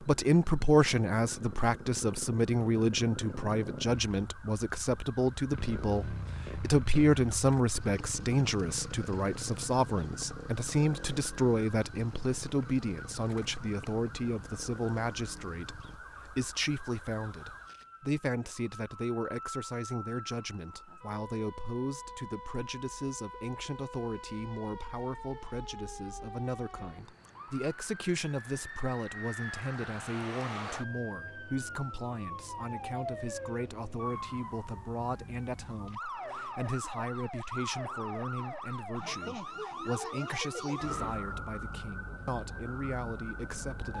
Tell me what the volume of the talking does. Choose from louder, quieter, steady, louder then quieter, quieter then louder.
quieter.